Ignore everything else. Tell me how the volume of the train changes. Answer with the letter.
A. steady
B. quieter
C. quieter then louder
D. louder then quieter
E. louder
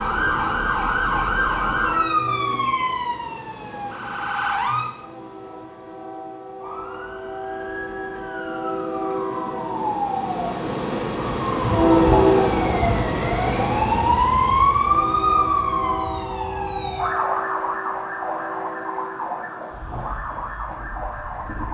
D.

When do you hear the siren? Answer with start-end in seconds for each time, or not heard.
0.0-4.9, 6.6-21.6.